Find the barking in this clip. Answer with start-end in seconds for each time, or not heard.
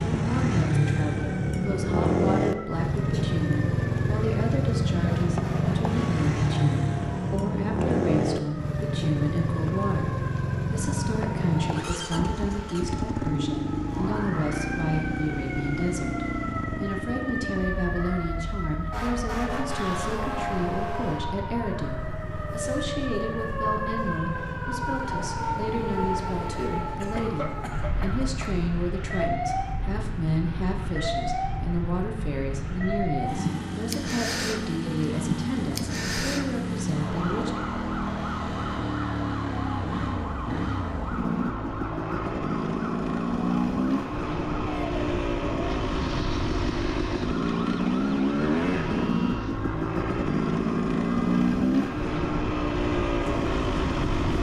not heard.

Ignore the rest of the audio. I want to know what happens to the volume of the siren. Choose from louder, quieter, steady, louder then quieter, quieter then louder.
louder then quieter.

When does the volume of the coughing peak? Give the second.
27 s.